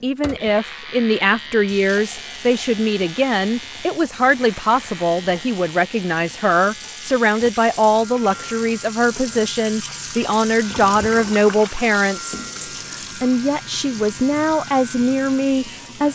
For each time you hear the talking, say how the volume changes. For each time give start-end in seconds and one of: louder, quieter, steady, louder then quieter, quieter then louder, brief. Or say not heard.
0.0-16.1 steady.